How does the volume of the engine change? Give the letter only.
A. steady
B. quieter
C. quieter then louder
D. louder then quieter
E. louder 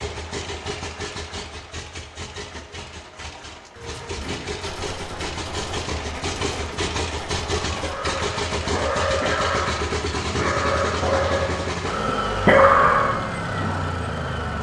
E.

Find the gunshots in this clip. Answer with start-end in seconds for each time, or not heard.
3.8-8.1.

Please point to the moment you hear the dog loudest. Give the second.
13 s.